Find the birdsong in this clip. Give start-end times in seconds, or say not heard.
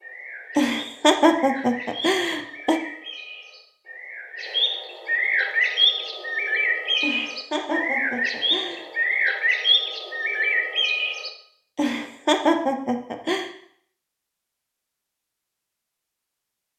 0.0-11.3.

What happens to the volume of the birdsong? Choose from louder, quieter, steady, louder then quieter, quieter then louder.
louder.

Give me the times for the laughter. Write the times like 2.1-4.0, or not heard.
0.6-2.8, 7.0-8.8, 11.8-13.5.